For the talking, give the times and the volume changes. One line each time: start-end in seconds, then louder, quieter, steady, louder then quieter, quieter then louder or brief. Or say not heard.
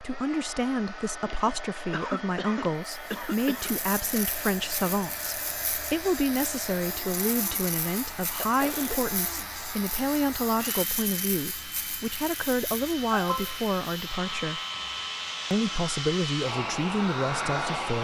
0.0-14.6 steady
15.5-17.9 brief.